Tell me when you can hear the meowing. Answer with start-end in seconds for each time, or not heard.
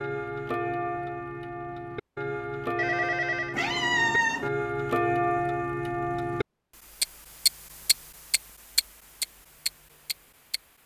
3.5-4.5.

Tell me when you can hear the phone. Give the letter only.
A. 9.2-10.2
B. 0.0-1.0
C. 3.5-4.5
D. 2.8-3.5
D.